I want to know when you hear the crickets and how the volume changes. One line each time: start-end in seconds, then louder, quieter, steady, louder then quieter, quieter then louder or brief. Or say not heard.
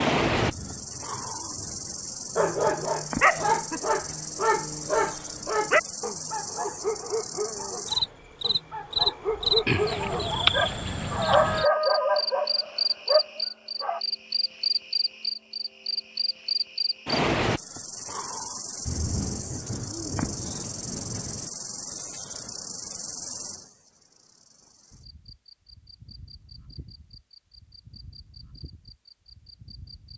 0.0-30.1 louder then quieter.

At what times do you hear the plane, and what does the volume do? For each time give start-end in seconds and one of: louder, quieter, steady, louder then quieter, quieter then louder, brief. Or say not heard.
not heard.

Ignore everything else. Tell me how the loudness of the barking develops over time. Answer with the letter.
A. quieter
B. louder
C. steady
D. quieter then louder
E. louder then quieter
D.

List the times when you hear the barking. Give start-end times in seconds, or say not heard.
2.4-14.0.